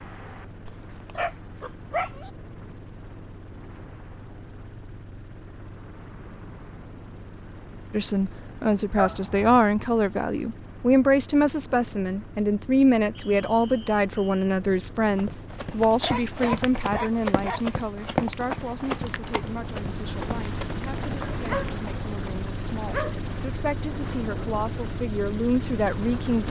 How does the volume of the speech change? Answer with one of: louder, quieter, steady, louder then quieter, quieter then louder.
quieter then louder.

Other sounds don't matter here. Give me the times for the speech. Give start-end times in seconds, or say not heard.
7.9-26.4.